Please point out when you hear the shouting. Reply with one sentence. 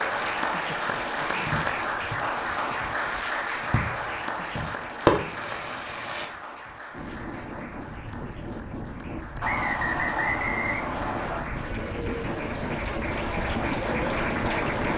You can't hear the shouting here.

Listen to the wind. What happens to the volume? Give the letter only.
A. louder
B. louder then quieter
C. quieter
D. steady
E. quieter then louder
A.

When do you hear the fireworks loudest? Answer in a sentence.
The volume of the fireworks peaks at 5 seconds.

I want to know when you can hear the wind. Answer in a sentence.
The wind can be heard from 6.9 to 14.9 s.